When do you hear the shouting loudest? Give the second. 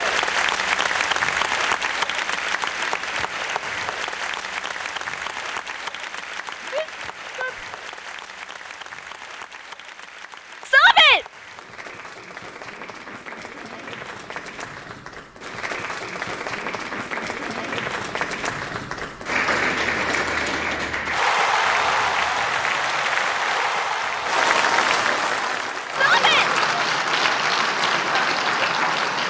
11 s.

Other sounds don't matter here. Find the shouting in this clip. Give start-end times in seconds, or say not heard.
6.7-7.5, 10.7-11.2, 25.9-26.5.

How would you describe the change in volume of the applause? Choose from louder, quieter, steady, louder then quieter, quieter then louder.
quieter then louder.